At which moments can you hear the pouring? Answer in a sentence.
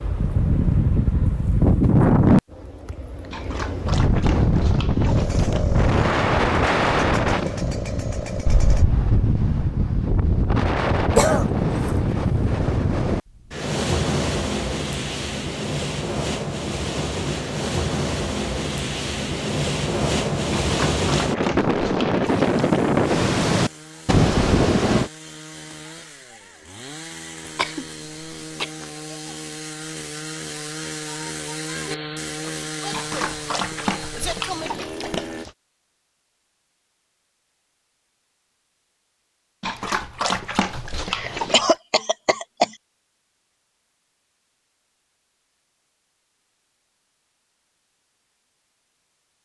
You can't hear the pouring here.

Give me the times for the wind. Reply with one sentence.
The wind can be heard from 0.0 to 25.1 s.